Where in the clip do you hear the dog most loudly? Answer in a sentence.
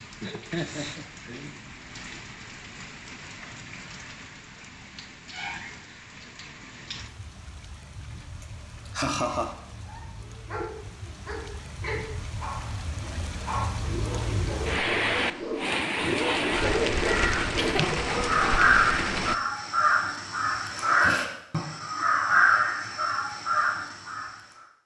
The volume of the dog peaks at 17 seconds.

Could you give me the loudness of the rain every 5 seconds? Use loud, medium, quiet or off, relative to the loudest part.
quiet, quiet, medium, loud, off.